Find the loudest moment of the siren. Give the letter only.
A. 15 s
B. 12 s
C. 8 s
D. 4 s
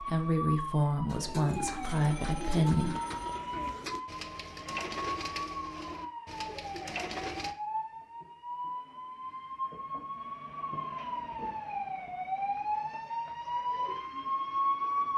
A.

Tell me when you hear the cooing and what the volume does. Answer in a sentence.
You can hear the cooing from 1.1 to 7.5 s, at a steady volume.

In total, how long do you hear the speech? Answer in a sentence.
You can hear the speech for 3 seconds altogether.